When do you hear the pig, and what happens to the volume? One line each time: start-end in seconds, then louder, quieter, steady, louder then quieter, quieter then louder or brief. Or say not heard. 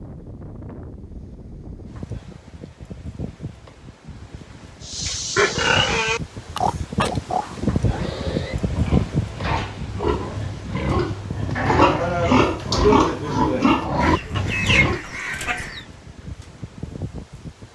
4.8-15.0 quieter then louder.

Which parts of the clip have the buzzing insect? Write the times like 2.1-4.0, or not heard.
not heard.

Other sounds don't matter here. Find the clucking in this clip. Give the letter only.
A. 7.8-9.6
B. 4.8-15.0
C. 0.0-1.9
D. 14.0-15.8
D.